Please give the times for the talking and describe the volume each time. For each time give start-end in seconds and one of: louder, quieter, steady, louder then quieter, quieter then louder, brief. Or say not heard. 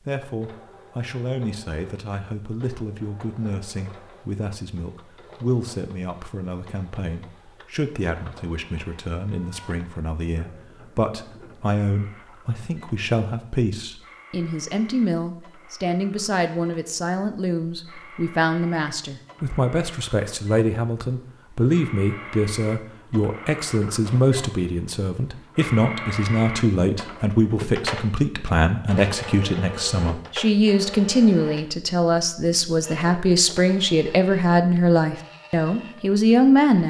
0.0-36.8 louder.